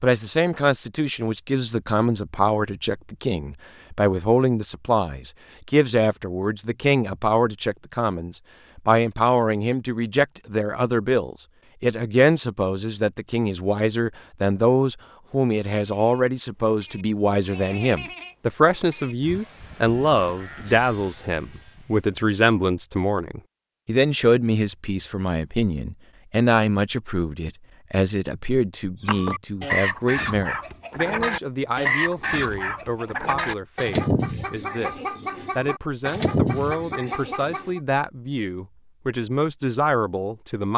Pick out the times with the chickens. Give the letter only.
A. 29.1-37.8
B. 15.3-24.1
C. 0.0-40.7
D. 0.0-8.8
A.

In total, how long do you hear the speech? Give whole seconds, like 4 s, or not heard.
41 s.